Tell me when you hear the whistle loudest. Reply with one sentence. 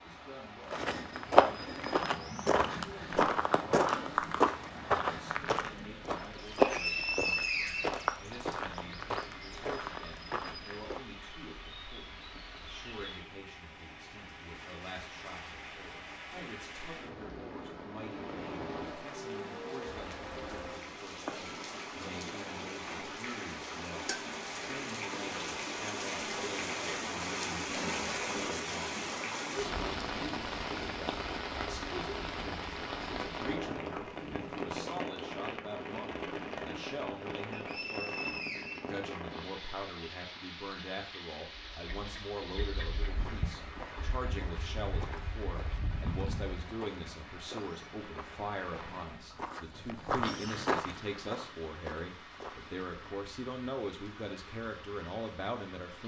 The loudest moment of the whistle is at 7 seconds.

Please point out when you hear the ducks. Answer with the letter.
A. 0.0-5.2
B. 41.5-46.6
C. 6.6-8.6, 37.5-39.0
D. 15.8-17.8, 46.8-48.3
B.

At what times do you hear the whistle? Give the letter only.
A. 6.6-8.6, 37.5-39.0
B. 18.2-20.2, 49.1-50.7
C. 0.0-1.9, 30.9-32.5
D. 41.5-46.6
A.